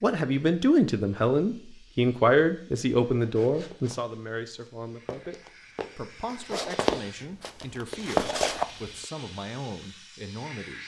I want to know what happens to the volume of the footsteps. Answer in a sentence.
The volume of the footsteps goes up.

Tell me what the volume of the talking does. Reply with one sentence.
The loudness of the talking goes down.